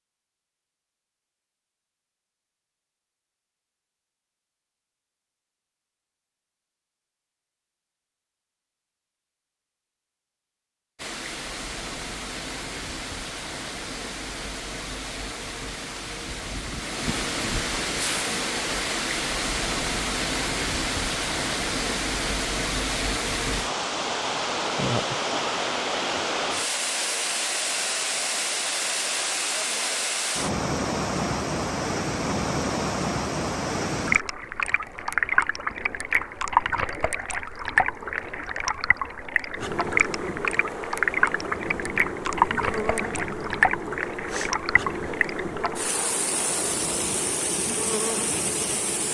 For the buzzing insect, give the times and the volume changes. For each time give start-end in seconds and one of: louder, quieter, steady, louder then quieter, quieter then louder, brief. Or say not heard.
39.5-49.0 steady.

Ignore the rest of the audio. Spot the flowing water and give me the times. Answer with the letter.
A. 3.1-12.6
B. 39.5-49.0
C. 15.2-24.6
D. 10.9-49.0
D.